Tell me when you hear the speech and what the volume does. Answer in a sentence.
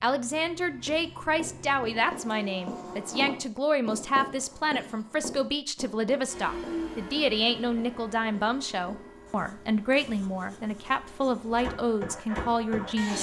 You can hear the speech from 0.0 to 13.1 s, at a steady volume.